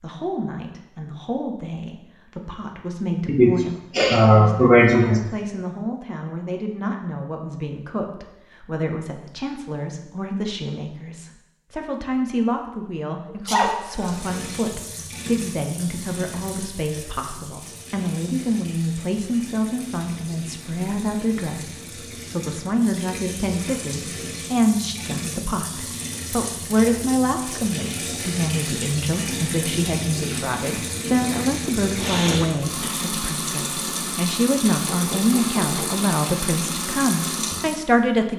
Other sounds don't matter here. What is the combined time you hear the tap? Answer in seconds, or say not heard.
24 s.